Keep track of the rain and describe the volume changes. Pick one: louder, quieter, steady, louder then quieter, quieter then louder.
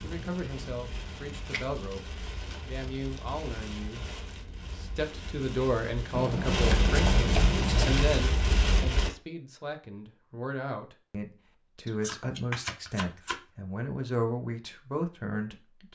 louder.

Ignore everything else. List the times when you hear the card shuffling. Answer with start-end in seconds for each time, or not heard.
1.3-3.3, 6.1-8.1, 11.8-13.4.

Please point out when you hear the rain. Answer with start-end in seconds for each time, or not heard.
0.0-9.1.